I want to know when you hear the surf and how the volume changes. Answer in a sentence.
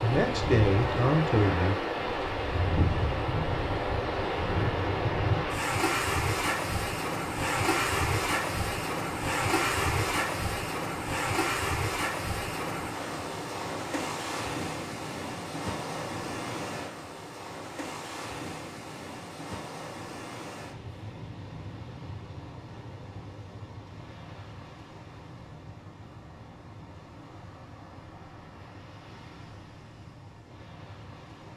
The surf can be heard from 0.0 to 31.5 s, getting quieter.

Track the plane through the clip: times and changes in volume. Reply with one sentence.
The plane can't be heard in this clip.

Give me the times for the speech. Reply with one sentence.
You can hear the speech from 0.0 to 1.8 s.